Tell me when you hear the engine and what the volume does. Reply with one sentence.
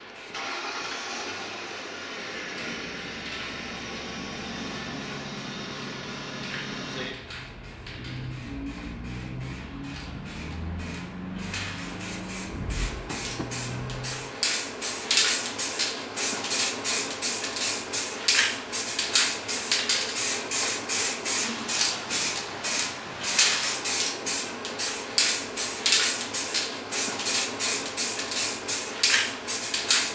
The engine can be heard from 0.1 to 14.3 s, at a steady volume.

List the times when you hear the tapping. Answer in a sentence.
You can hear the tapping from 13.1 to 13.5 s.